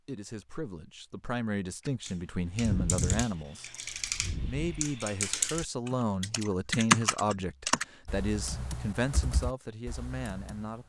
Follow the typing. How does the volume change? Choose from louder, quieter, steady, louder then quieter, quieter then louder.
louder then quieter.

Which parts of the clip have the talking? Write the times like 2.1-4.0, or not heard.
0.1-3.7, 4.5-10.8.